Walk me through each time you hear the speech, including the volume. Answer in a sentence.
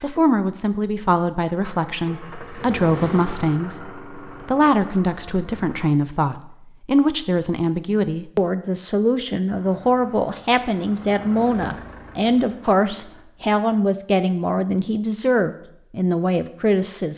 You can hear the speech from 0.0 to 17.1 s, at a steady volume.